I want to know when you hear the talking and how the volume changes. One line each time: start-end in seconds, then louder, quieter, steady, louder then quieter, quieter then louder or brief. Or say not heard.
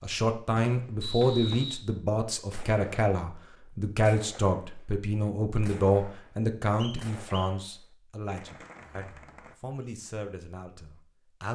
0.0-11.5 quieter.